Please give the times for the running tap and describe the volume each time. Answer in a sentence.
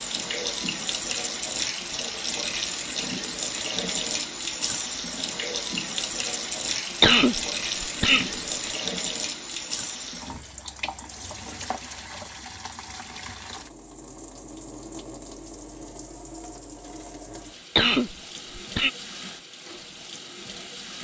The running tap can be heard from 0.0 to 20.9 s, getting quieter.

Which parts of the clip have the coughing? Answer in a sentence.
You can hear the coughing from 7.0 to 8.3 s and from 17.8 to 18.9 s.